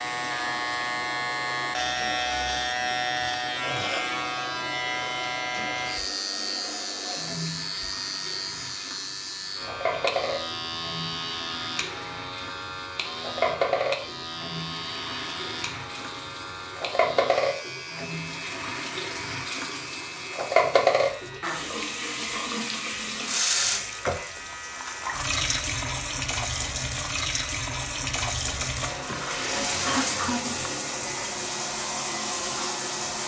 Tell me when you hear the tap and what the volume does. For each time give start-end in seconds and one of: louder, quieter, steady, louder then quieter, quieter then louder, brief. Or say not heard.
0.0-33.2 louder.